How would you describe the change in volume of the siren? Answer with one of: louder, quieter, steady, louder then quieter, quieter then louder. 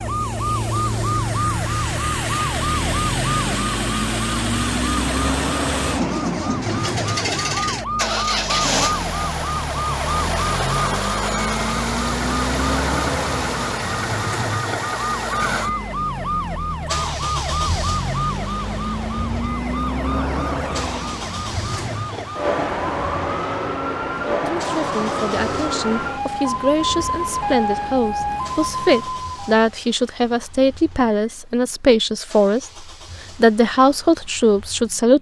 steady.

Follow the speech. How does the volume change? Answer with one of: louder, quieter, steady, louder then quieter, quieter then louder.
louder.